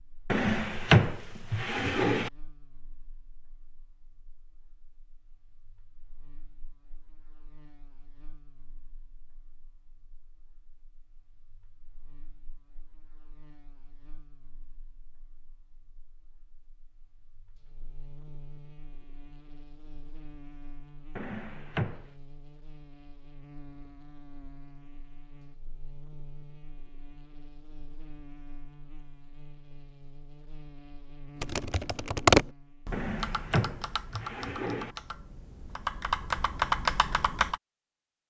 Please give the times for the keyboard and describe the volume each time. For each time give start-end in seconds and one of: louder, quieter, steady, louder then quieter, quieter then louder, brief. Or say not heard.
31.4-37.6 quieter then louder.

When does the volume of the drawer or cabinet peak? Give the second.
1 s.